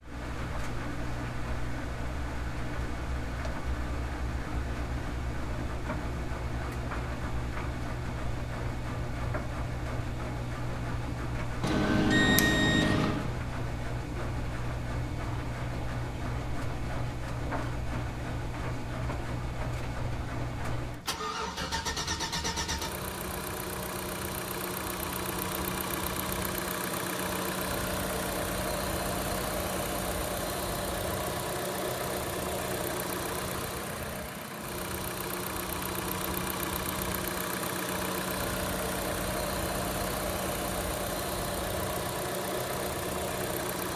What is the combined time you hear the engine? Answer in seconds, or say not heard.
44 s.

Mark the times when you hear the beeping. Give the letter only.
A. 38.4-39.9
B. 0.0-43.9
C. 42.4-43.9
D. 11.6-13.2
D.